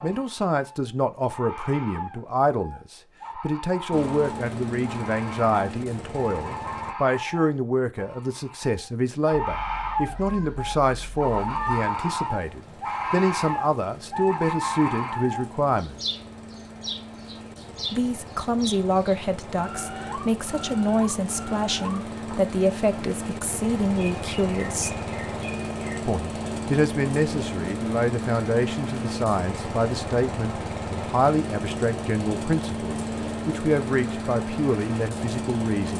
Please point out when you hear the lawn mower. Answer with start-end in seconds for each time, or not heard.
3.9-7.0, 11.2-35.9.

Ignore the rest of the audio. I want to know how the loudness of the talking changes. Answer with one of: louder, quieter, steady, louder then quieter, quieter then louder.
steady.